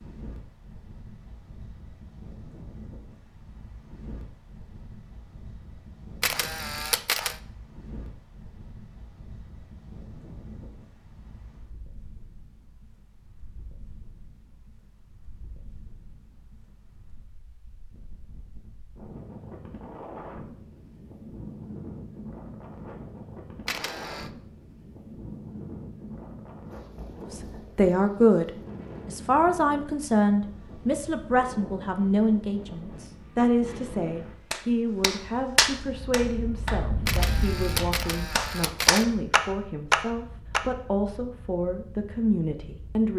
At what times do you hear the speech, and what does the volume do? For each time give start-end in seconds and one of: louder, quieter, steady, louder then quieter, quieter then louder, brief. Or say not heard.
27.3-43.1 quieter.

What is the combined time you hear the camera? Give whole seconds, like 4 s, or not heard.
4 s.